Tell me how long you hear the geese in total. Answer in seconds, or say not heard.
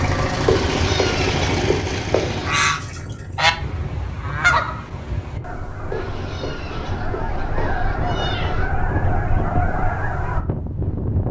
8 s.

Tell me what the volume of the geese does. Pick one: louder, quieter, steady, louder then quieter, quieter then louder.
quieter then louder.